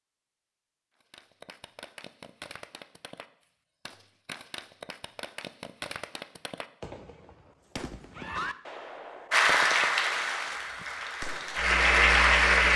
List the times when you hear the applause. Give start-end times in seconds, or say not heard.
9.3-12.7.